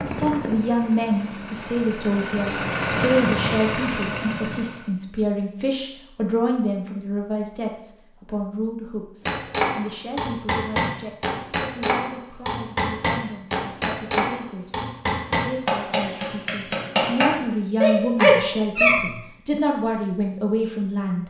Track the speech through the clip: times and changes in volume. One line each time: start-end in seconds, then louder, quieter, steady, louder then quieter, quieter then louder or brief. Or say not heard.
0.0-21.2 quieter then louder.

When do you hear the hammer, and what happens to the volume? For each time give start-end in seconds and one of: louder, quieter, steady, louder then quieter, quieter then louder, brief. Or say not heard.
9.2-17.3 steady.